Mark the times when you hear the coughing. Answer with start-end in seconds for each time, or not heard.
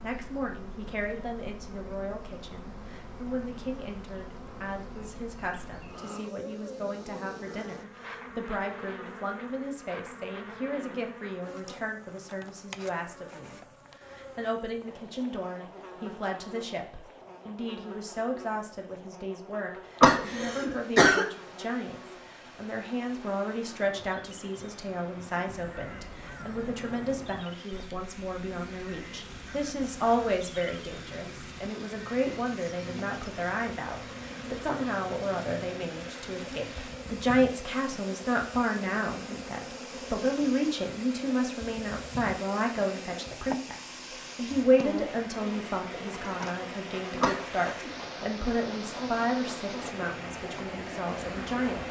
20.0-21.2, 47.2-47.9.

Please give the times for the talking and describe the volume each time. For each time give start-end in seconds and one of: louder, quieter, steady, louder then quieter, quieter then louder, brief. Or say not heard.
0.0-51.8 louder.